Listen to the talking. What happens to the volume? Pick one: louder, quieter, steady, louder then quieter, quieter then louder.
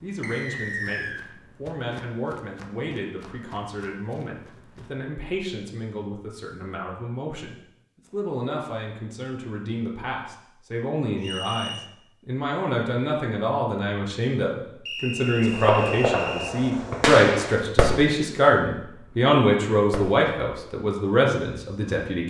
louder.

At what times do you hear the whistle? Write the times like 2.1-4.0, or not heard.
0.2-1.2, 11.2-11.9, 14.8-16.6.